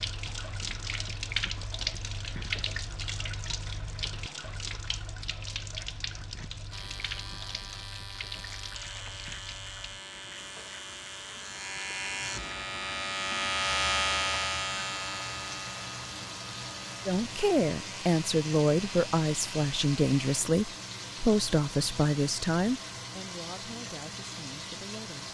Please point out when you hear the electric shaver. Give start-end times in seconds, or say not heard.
6.7-20.4.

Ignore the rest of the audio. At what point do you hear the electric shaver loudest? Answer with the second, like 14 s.
14 s.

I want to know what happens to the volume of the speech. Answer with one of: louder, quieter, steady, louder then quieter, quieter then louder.
quieter.